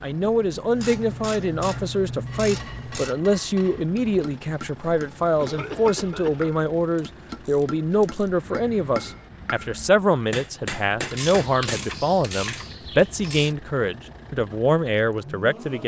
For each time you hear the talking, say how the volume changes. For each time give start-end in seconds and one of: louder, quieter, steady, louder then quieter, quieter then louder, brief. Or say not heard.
0.0-15.8 steady.